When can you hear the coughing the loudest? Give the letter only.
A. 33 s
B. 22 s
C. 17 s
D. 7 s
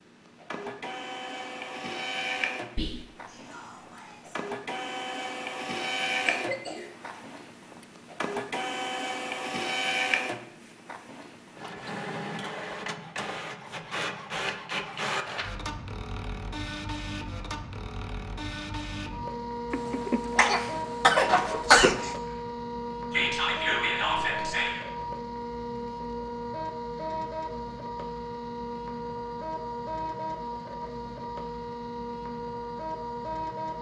B.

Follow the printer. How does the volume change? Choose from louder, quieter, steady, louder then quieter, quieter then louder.
steady.